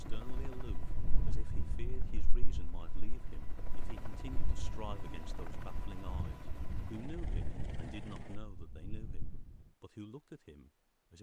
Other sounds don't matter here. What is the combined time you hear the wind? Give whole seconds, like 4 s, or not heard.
10 s.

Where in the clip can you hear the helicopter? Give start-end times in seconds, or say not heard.
0.0-8.4.